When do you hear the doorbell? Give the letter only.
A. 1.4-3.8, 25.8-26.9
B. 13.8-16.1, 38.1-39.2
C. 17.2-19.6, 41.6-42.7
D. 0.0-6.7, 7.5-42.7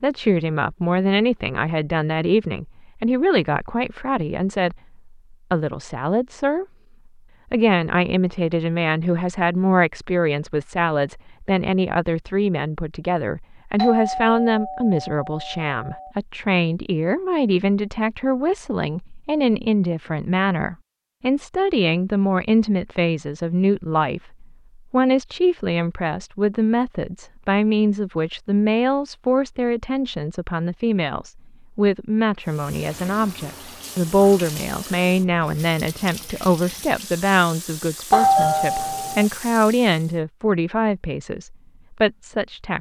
B.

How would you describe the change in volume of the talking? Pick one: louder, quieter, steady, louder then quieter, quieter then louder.
steady.